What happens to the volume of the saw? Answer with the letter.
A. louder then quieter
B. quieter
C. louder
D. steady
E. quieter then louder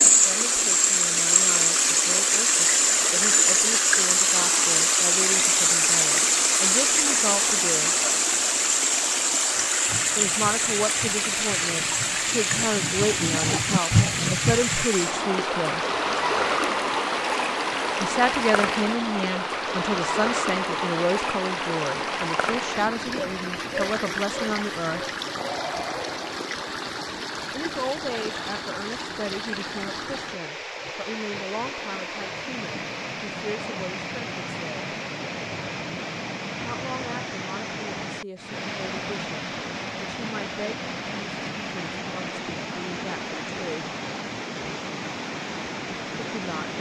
C.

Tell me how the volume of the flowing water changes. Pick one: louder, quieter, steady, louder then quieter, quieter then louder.
quieter.